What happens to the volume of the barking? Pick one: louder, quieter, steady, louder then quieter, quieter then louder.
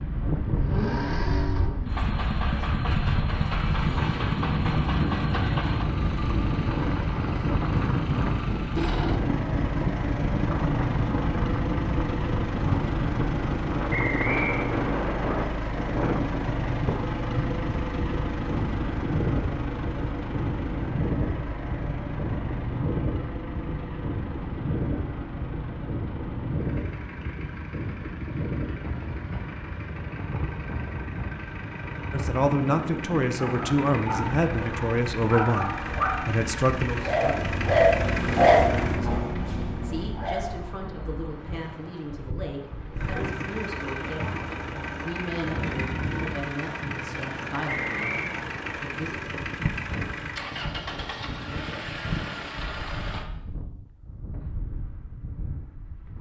louder then quieter.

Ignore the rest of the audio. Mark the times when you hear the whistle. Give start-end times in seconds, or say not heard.
13.9-14.7, 47.7-48.4.